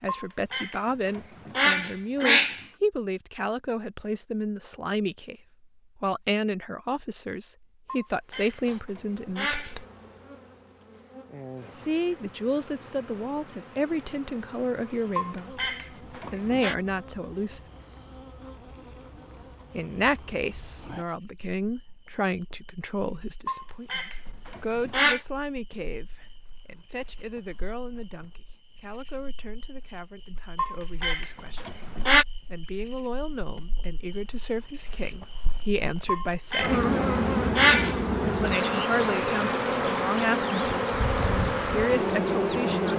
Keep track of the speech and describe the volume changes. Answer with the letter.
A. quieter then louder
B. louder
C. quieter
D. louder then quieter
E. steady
A.